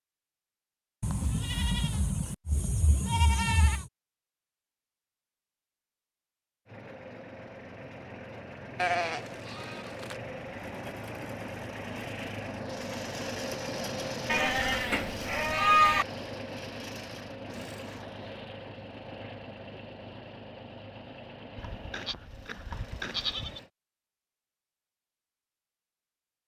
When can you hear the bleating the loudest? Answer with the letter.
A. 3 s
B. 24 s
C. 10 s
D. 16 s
D.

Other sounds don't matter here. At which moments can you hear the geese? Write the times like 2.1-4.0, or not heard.
not heard.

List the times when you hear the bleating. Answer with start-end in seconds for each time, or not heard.
1.0-3.9, 8.8-10.2, 14.2-16.1, 21.6-23.6.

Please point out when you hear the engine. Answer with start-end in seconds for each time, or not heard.
6.7-23.7.